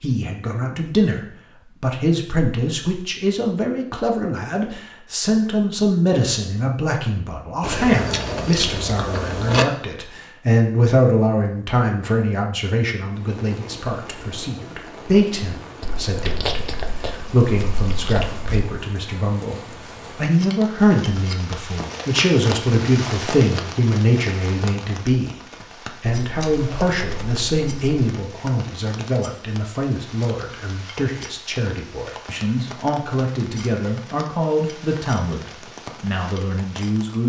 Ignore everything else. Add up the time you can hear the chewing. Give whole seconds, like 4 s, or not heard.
7 s.